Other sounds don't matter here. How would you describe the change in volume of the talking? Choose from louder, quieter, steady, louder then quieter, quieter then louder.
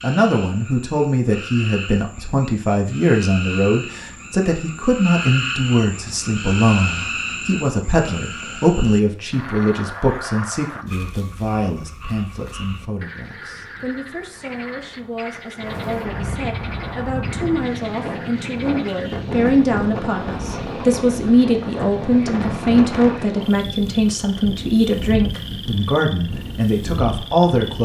quieter then louder.